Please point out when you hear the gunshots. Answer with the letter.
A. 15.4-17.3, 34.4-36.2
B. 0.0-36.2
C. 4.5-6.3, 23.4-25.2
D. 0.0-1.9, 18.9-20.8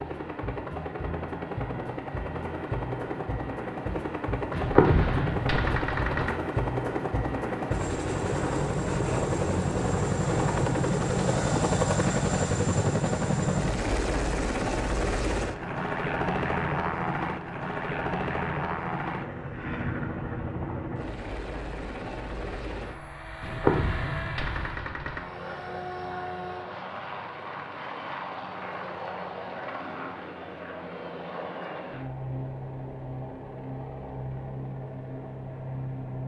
C.